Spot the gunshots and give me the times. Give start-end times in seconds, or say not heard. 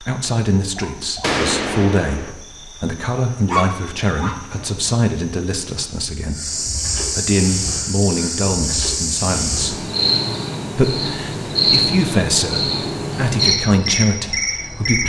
1.2-2.4.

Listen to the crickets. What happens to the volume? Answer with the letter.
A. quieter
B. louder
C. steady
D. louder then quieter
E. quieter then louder
B.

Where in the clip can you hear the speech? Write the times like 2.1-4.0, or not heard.
0.0-9.8, 10.8-15.0.